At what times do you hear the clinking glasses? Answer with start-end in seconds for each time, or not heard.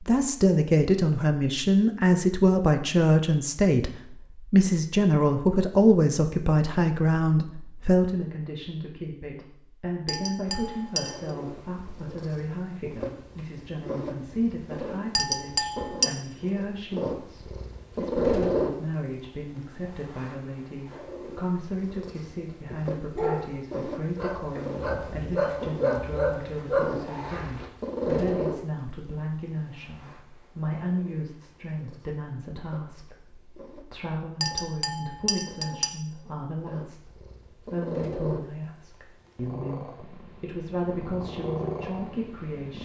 10.1-11.2, 15.2-16.1, 34.4-35.9.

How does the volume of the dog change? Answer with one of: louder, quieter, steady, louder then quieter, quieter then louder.
louder.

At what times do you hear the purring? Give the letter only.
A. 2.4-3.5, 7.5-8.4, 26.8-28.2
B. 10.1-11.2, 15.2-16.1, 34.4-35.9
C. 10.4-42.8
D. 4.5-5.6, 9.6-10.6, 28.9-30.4
C.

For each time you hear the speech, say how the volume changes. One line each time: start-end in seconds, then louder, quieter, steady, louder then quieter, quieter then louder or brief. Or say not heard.
0.0-42.8 quieter.